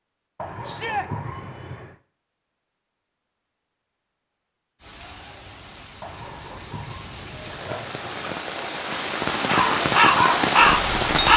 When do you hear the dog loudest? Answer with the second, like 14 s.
1 s.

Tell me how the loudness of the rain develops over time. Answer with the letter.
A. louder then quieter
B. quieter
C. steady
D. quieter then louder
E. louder
E.